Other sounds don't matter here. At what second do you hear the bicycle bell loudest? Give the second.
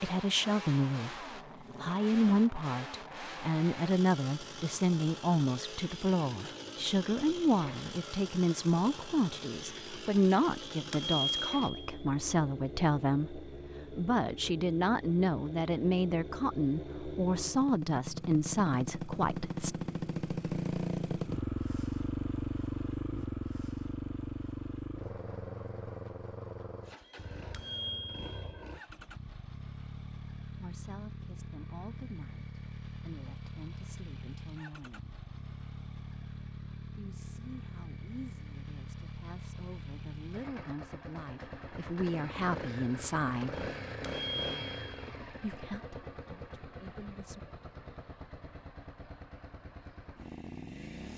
11 s.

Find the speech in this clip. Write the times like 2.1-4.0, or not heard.
0.0-19.8, 30.6-35.1, 37.0-43.6, 45.4-47.4.